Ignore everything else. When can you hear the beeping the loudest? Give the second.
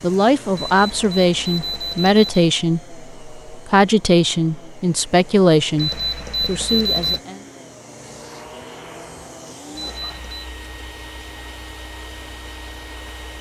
7 s.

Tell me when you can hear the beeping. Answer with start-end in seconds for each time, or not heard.
0.6-2.5, 5.8-7.2, 9.8-10.4.